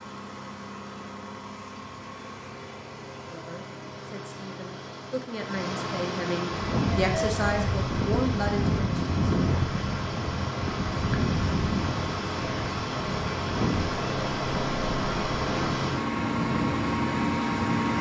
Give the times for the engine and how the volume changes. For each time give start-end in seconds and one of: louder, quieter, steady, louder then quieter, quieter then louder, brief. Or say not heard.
0.0-17.9 louder.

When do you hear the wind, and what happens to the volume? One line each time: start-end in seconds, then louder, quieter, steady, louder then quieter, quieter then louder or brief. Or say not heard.
6.5-17.9 steady.